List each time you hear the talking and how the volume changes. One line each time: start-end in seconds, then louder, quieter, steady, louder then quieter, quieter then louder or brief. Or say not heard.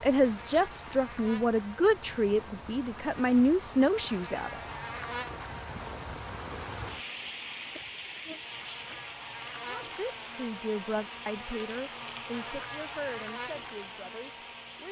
0.0-4.6 steady
9.7-14.8 quieter.